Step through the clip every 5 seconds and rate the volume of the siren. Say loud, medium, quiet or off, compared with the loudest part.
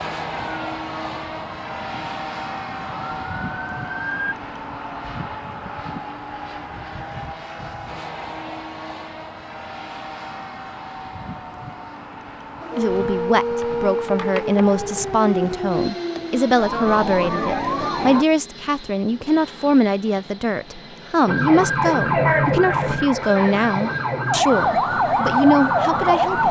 quiet, off, medium, medium, loud, loud.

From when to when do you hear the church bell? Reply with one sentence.
The church bell can't be heard in this clip.